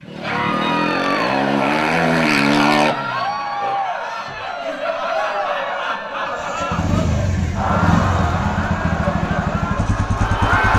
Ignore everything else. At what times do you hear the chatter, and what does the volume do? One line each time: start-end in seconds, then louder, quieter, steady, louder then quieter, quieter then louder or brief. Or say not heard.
0.1-10.7 steady.